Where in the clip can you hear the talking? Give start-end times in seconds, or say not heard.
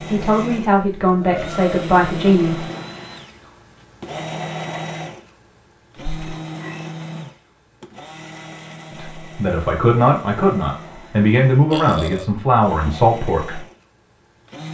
0.1-2.6, 8.9-13.6.